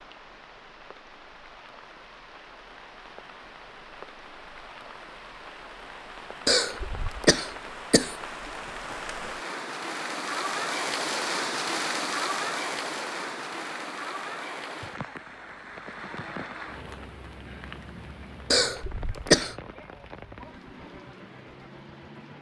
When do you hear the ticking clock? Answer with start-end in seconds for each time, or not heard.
not heard.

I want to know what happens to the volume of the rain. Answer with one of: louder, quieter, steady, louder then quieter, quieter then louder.
louder then quieter.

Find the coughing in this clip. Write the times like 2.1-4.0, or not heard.
6.5-8.2, 18.5-19.6.